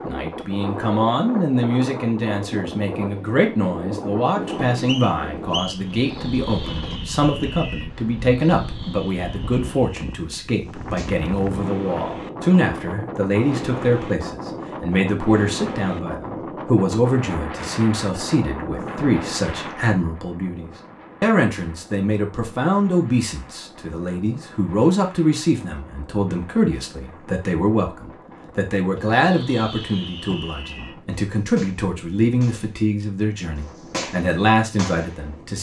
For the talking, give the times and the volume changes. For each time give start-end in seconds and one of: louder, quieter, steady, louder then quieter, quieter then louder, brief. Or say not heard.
0.0-35.5 steady.